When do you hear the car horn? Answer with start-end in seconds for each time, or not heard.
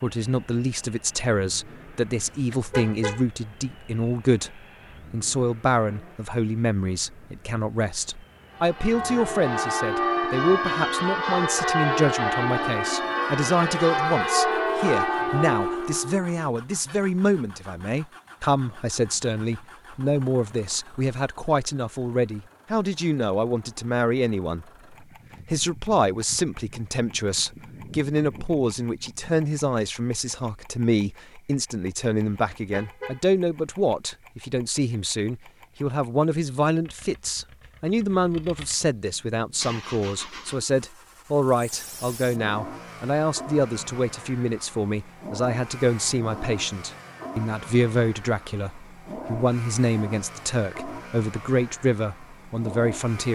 2.2-3.2, 32.2-33.2.